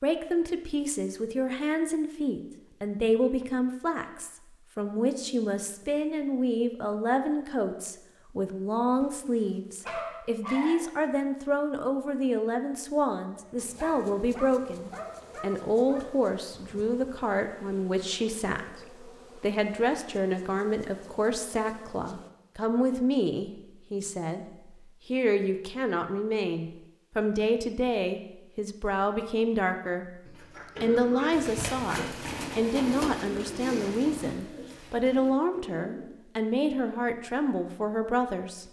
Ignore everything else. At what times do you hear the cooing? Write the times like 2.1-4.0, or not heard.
30.2-36.1.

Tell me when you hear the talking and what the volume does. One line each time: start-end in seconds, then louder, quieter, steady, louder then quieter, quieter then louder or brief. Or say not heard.
0.0-30.1 steady
30.8-38.6 steady.